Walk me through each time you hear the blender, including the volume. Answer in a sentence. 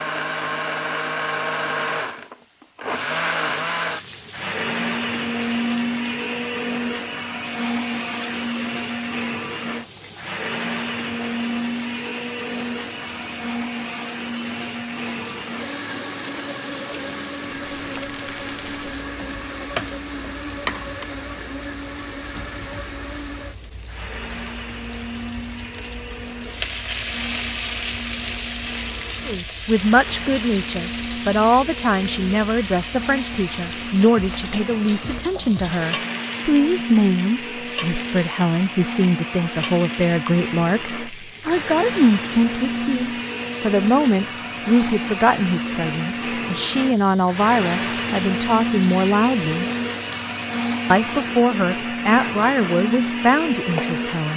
You can hear the blender from 0.0 to 54.3 s, getting quieter then louder.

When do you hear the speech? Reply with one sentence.
You can hear the speech from 29.2 to 49.6 s and from 50.9 to 54.3 s.